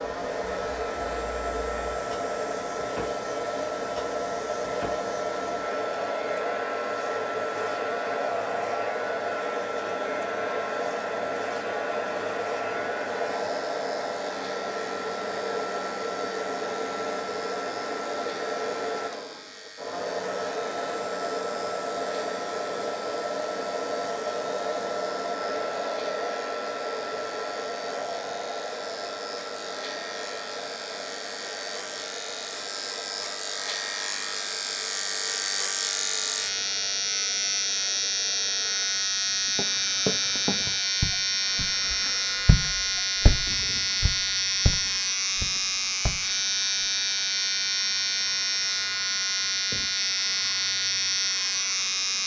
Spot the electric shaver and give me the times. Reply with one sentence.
You can hear the electric shaver from 0.0 to 52.2 s.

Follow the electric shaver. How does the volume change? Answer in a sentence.
The loudness of the electric shaver goes up.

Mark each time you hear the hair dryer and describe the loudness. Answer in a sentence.
The hair dryer can be heard from 0.0 to 52.2 s, getting quieter.